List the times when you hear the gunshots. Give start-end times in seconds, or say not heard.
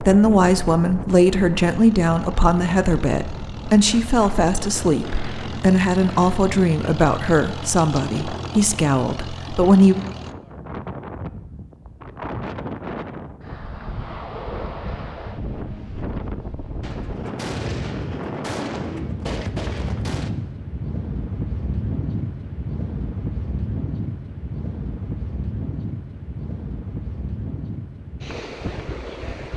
16.8-20.3.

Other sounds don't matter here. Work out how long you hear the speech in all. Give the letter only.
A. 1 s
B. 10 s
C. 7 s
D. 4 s
B.